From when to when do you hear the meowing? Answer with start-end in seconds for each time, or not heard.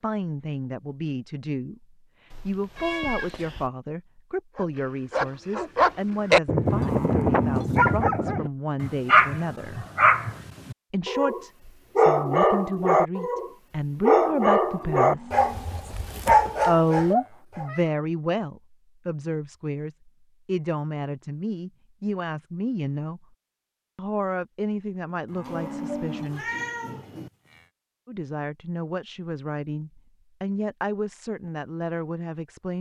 2.3-3.7, 17.1-17.9, 25.4-27.3.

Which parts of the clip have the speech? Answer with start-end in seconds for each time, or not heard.
0.0-9.8, 10.9-15.3, 16.6-23.2, 23.9-26.4, 28.1-32.7.